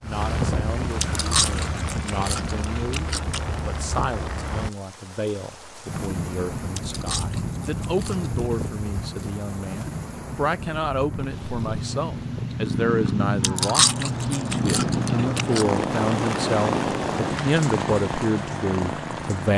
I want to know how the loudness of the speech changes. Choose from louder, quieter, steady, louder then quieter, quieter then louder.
louder.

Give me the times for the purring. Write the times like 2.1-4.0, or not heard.
11.2-19.5.